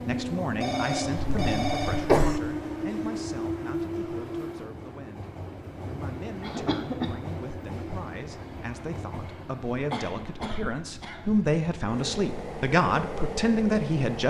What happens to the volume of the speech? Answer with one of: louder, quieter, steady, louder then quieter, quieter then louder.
quieter then louder.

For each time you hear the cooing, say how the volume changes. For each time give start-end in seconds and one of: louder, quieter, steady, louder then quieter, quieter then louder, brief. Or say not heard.
not heard.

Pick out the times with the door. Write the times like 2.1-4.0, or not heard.
not heard.